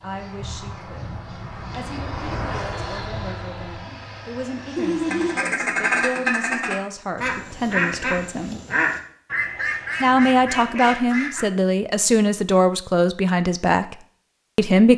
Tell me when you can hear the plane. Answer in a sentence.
You can hear the plane from 0.0 to 5.4 s.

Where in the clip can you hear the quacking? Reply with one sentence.
The quacking can be heard from 4.8 to 11.4 s.